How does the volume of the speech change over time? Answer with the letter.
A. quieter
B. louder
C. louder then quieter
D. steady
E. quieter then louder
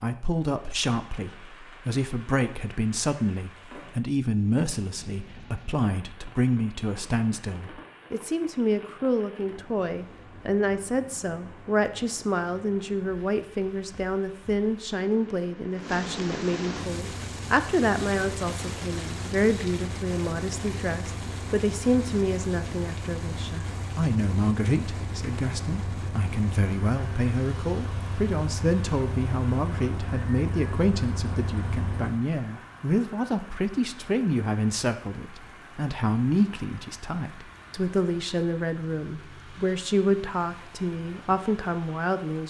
D.